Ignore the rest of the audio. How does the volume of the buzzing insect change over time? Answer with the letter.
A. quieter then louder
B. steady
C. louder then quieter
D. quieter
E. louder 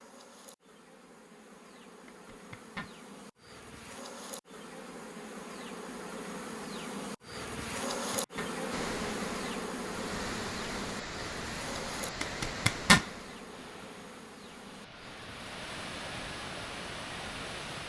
C.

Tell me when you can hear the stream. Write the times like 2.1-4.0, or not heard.
8.7-17.8.